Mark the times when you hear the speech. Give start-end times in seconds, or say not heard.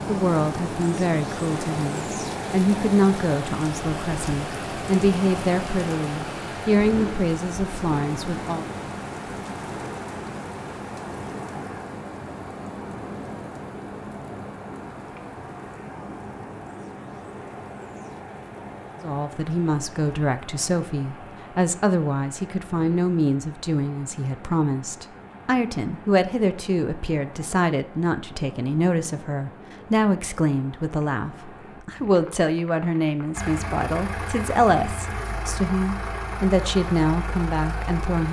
0.1-8.7, 19.0-38.2.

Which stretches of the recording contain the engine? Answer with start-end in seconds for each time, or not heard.
33.3-38.2.